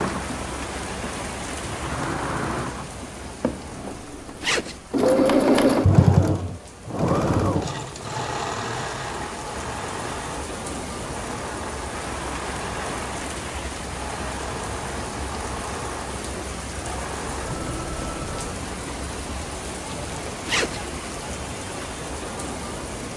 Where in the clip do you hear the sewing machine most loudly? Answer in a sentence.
The loudest moment of the sewing machine is at 6 seconds.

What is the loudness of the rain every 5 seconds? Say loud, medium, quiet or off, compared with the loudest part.
loud, medium, loud, loud, loud.